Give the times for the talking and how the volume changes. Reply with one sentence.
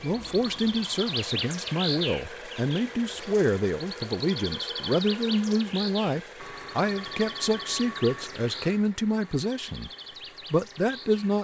You can hear the talking from 0.0 to 9.9 s, at a steady volume; and briefly from 10.5 to 11.3 s.